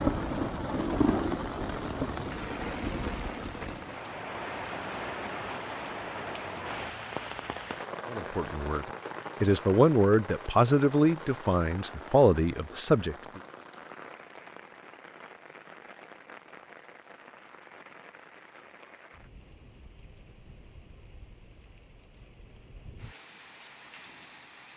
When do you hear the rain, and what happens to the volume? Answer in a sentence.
The rain can be heard from 0.0 to 24.7 s, getting quieter.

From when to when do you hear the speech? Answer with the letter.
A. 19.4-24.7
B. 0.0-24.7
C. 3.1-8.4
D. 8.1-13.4
D.